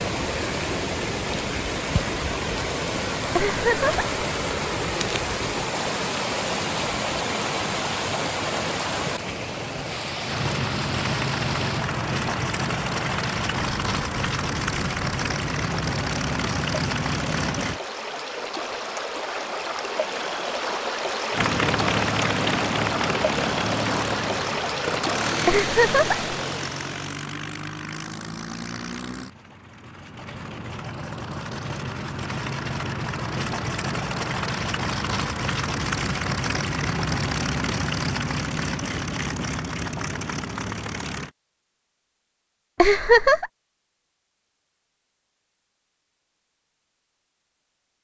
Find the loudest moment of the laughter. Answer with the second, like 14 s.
43 s.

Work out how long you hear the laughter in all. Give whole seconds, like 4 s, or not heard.
2 s.